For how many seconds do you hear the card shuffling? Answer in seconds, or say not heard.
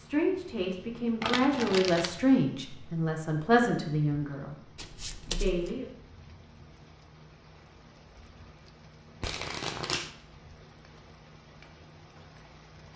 3 s.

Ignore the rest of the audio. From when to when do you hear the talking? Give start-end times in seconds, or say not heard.
0.0-5.8.